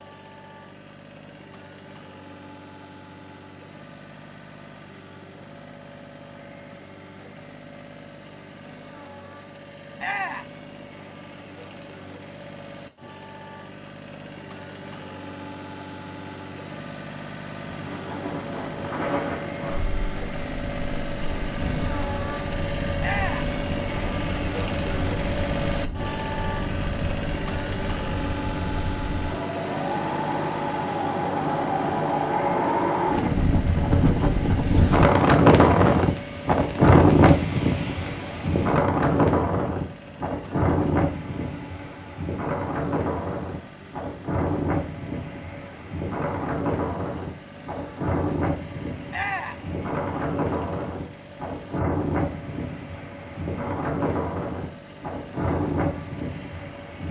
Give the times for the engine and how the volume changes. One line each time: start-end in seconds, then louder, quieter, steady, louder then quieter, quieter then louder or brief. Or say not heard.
0.0-57.0 louder then quieter.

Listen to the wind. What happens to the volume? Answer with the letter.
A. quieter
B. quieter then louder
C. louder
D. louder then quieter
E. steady
D.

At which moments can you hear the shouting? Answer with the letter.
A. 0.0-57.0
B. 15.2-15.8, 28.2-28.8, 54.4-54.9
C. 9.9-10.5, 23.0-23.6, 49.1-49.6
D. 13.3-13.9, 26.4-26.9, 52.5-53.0
C.